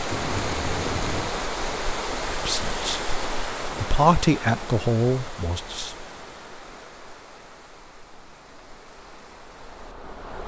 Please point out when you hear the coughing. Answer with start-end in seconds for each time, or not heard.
0.1-1.4.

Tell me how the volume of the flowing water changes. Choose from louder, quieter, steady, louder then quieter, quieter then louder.
quieter.